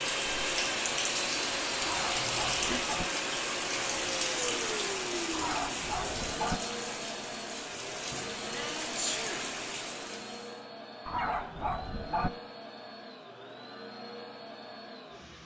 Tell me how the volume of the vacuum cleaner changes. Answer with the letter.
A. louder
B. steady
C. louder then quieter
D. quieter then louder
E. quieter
E.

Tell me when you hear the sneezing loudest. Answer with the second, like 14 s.
9 s.